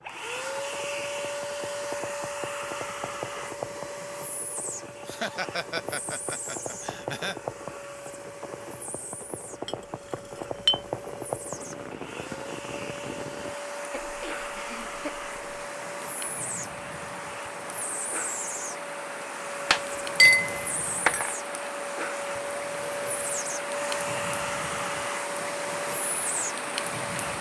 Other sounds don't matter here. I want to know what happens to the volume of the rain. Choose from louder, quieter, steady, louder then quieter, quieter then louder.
louder.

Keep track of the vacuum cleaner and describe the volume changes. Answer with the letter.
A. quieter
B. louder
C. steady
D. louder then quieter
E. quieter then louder
E.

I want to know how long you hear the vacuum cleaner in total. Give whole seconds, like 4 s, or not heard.
27 s.